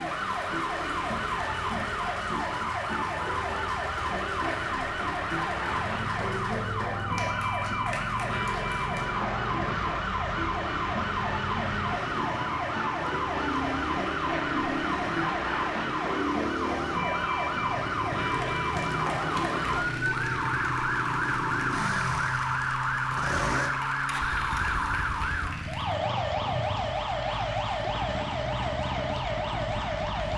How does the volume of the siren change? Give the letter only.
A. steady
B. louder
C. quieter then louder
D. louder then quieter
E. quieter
A.